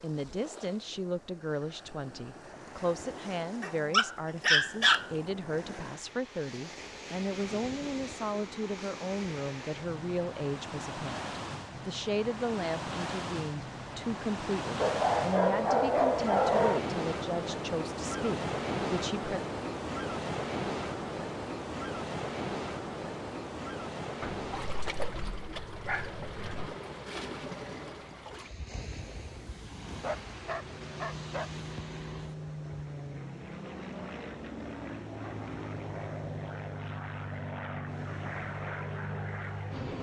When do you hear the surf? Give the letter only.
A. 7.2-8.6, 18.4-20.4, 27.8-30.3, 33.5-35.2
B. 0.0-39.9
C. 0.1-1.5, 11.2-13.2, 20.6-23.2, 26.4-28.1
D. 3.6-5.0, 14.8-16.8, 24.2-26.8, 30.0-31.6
B.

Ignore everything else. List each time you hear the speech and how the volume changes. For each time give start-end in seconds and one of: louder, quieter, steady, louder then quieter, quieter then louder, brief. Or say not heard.
0.0-19.4 steady.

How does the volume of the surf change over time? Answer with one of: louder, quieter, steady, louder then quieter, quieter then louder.
louder then quieter.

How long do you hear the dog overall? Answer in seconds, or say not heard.
8 s.